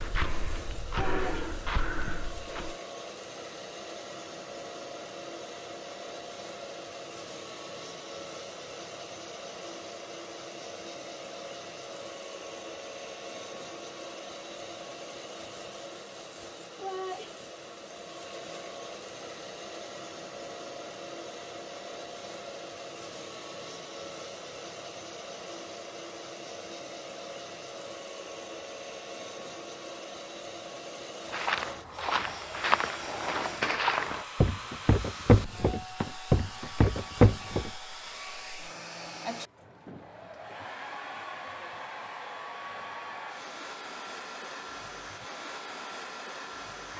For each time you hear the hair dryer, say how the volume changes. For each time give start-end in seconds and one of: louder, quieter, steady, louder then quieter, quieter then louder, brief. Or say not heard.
0.0-46.9 steady.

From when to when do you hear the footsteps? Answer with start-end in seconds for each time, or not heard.
0.0-2.8, 31.3-37.7.